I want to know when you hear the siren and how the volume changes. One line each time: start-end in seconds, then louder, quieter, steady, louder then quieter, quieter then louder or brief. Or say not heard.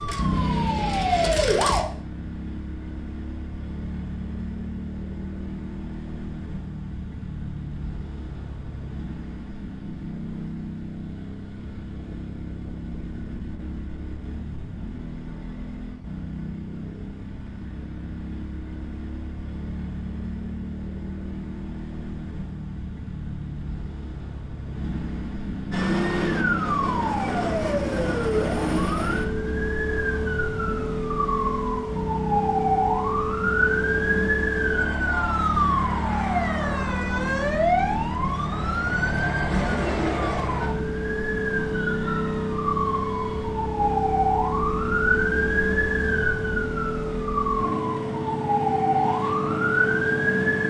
0.0-1.9 brief
25.7-50.6 steady.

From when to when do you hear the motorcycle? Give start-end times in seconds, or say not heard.
0.0-50.6.